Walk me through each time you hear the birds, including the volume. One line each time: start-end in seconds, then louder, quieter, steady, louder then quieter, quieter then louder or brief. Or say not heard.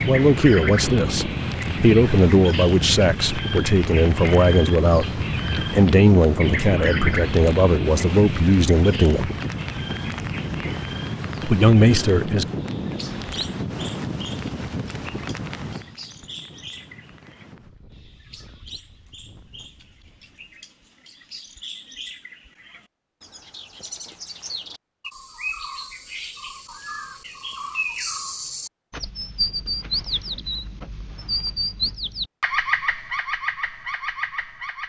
0.0-34.8 quieter then louder.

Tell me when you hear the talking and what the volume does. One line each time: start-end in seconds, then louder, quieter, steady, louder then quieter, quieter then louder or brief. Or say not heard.
0.1-9.3 steady
11.4-12.4 brief.